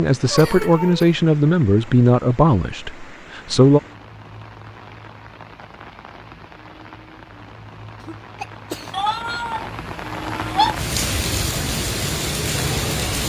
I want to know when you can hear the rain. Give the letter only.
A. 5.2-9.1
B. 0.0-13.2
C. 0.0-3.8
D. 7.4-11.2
B.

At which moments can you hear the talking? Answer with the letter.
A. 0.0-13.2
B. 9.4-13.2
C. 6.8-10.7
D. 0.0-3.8
D.